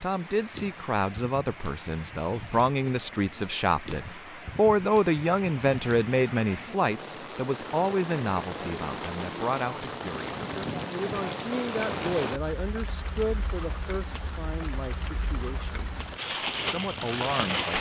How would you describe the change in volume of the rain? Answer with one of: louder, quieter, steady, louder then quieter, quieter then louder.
louder.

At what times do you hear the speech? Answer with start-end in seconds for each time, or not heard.
0.0-15.9, 16.6-17.7.